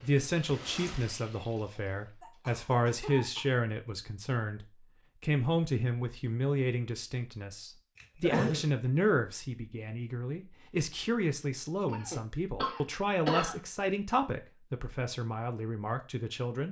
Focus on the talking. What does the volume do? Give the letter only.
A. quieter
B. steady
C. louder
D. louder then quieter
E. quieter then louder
B.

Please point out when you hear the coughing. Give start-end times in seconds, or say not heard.
2.2-3.5, 8.0-8.7, 11.8-13.6.